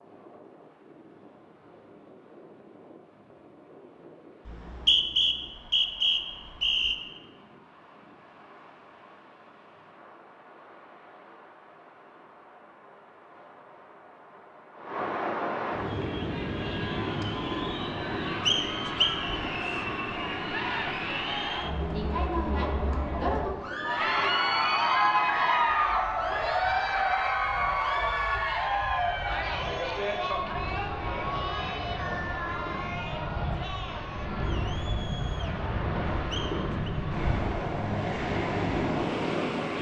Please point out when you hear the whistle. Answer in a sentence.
The whistle can be heard from 4.5 to 7.0 s, from 18.4 to 19.9 s and from 36.3 to 36.9 s.